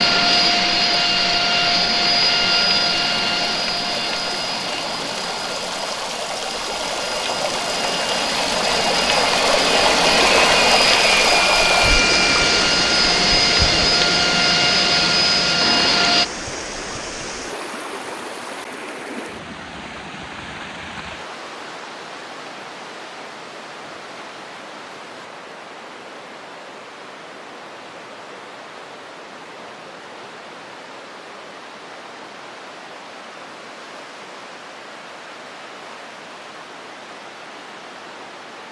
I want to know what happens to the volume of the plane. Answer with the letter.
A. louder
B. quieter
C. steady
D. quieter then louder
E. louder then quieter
D.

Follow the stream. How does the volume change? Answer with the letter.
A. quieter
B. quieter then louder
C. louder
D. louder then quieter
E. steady
A.